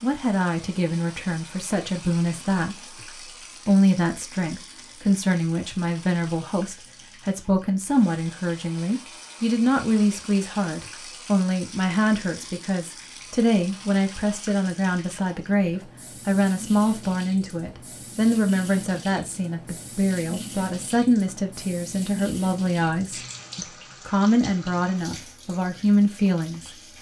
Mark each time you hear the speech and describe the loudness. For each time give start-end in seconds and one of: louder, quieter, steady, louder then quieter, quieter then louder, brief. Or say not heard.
0.0-3.0 brief
3.6-26.7 steady.